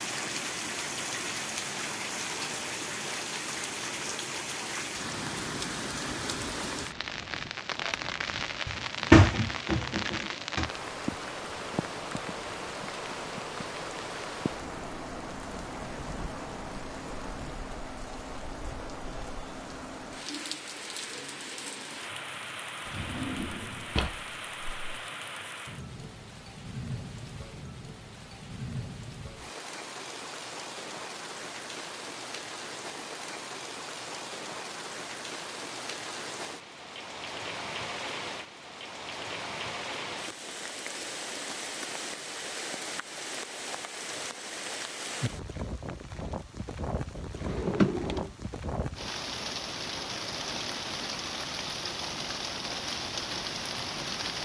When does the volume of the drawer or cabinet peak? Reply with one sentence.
The volume of the drawer or cabinet peaks at 9 seconds.